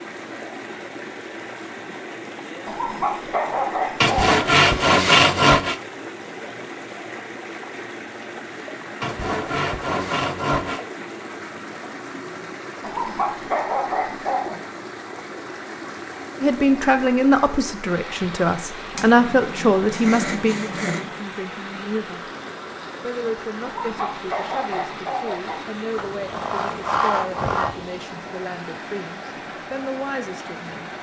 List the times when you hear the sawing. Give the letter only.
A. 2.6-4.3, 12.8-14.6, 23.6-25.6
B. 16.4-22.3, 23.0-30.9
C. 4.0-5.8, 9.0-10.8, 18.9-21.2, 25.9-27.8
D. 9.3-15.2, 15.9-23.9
C.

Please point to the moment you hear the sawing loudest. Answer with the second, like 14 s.
5 s.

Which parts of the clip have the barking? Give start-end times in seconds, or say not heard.
2.6-4.3, 12.8-14.6, 23.6-25.6.